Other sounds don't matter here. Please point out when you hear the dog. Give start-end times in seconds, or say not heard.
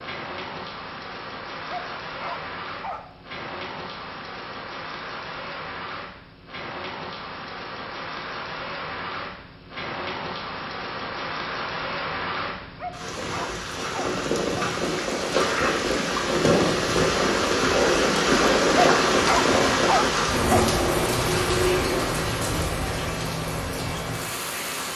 1.6-3.0, 12.8-14.8, 18.7-20.6.